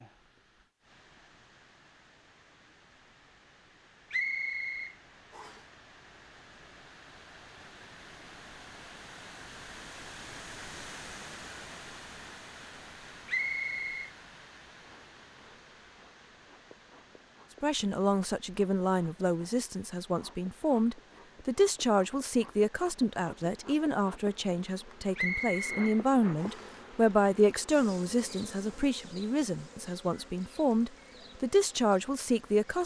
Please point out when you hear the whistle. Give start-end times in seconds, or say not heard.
4.1-5.6, 13.2-14.1, 25.1-26.8.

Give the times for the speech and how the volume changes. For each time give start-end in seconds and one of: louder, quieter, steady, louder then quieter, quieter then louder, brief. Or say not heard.
17.6-32.8 steady.